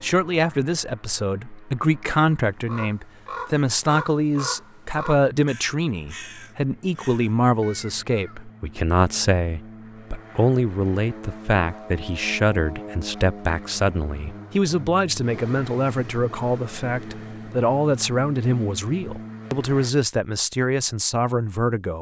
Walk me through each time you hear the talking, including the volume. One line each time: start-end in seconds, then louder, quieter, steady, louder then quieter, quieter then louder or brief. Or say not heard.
0.0-21.9 steady.